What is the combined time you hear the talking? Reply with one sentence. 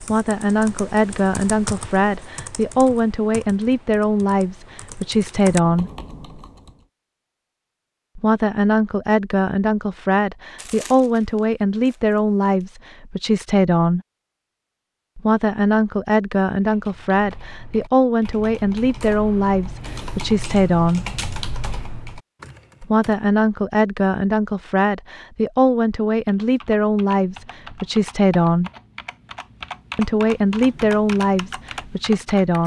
The talking can be heard for 26 seconds in total.